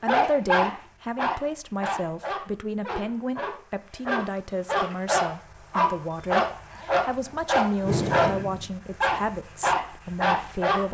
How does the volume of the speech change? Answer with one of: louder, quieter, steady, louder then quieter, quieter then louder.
steady.